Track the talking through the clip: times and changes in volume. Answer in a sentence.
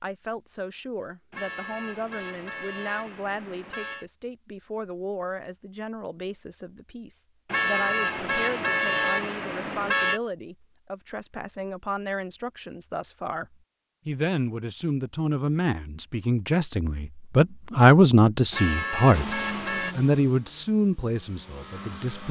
You can hear the talking from 0.0 to 22.2 s, getting louder.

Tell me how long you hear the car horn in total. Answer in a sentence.
You can hear the car horn for 7 seconds altogether.